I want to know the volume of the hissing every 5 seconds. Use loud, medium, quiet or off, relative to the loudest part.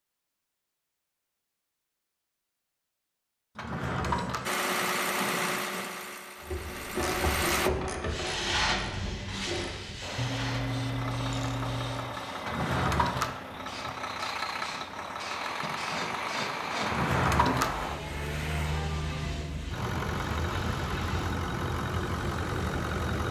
off, loud, medium, medium, medium.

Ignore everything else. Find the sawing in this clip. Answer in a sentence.
The sawing can be heard from 4.0 to 5.9 s and from 15.6 to 17.0 s.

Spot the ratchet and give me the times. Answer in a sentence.
The ratchet can be heard from 6.4 to 12.1 s.